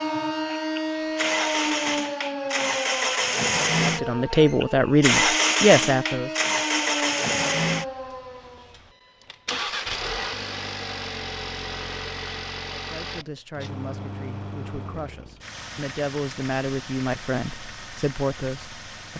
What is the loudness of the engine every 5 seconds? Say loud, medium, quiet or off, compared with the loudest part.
loud, loud, medium, quiet.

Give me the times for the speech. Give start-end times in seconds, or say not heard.
3.8-6.3, 12.7-19.1.